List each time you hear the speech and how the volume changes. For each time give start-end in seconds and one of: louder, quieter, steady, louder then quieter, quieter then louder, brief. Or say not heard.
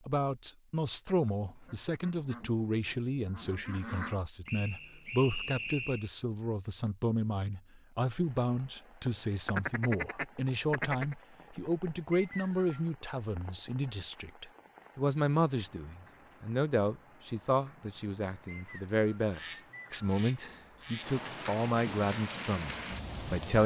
0.1-23.6 steady.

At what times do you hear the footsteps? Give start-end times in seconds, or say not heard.
not heard.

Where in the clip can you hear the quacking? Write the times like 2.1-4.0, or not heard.
1.2-4.2, 9.4-11.2, 19.3-21.1.